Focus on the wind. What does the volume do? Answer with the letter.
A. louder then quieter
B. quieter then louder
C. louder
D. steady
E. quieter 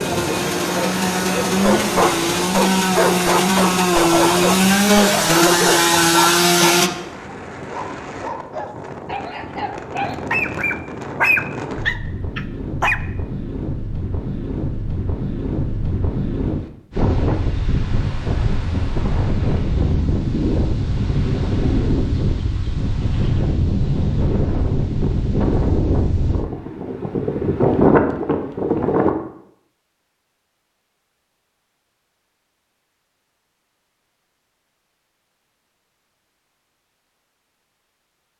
C.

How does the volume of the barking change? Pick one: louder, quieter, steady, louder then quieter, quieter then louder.
quieter then louder.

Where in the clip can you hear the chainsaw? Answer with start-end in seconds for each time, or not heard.
0.0-6.9.